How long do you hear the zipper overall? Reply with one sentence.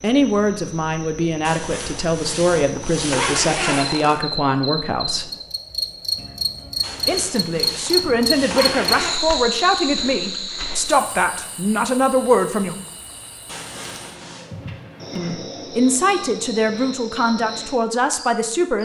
You can hear the zipper for 6 seconds altogether.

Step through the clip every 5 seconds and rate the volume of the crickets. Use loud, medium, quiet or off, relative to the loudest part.
medium, loud, medium, medium.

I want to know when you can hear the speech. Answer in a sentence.
The speech can be heard from 0.0 to 5.3 s, from 7.0 to 12.8 s and from 15.2 to 18.8 s.